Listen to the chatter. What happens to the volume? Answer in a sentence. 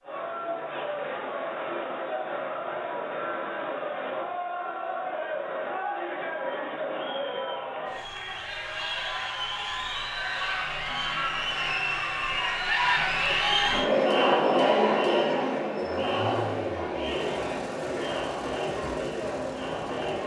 The loudness of the chatter goes up, then down.